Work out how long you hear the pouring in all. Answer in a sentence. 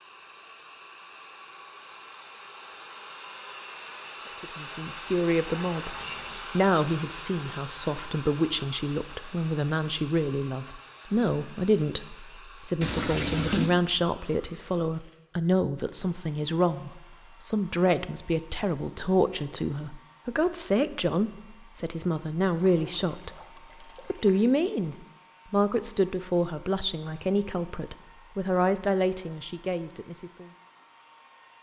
The pouring can be heard for 4 seconds in total.